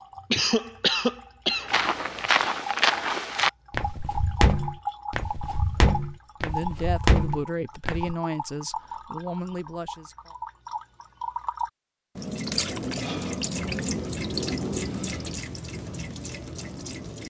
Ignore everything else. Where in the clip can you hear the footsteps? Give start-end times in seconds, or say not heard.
1.6-8.2.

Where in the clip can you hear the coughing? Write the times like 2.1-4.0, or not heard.
0.3-1.7.